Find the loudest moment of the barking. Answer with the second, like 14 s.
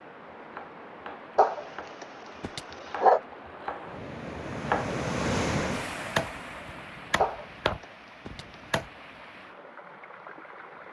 3 s.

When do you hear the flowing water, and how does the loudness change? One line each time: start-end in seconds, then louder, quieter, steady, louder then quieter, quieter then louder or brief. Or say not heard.
0.0-10.8 louder then quieter.